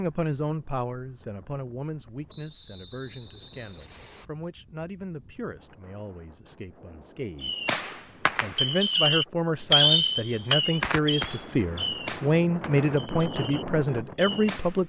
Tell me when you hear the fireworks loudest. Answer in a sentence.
The loudest moment of the fireworks is at 10 seconds.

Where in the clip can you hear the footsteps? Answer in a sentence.
The footsteps can't be heard in this clip.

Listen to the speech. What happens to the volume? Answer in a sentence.
The loudness of the speech goes down, then up.